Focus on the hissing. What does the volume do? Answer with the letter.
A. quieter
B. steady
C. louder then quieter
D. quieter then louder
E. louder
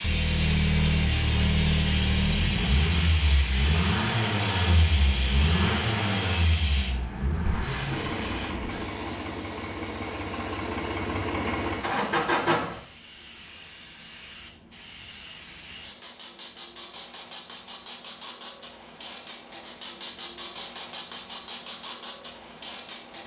D.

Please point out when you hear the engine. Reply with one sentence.
The engine can be heard from 0.0 to 12.8 s.